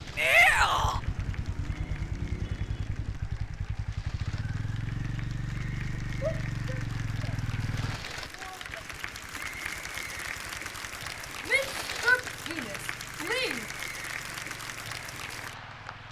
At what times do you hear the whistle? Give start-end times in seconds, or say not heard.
not heard.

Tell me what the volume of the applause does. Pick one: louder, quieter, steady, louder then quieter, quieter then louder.
louder.